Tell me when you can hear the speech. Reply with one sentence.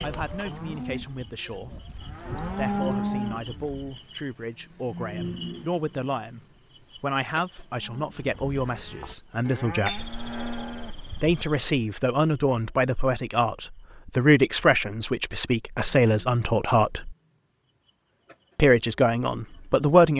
The speech can be heard from 0.0 to 1.8 s, from 2.5 to 6.4 s, from 7.0 to 10.1 s, from 11.2 to 17.1 s and from 18.6 to 20.1 s.